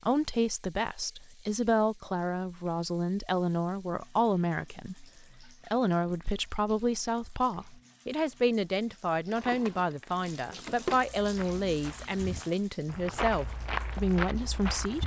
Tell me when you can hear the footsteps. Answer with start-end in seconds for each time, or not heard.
11.2-15.0.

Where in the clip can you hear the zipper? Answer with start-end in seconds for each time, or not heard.
not heard.